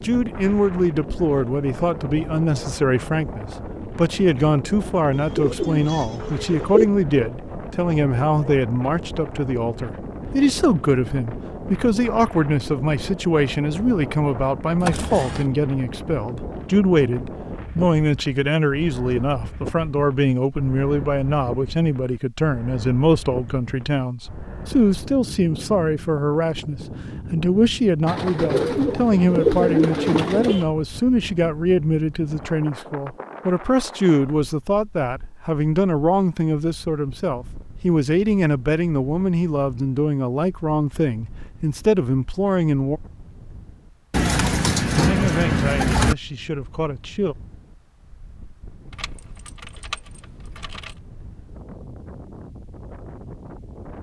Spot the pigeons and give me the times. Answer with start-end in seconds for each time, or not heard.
5.2-6.8, 28.1-30.6, 44.1-46.1.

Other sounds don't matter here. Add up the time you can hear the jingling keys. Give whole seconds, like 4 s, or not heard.
3 s.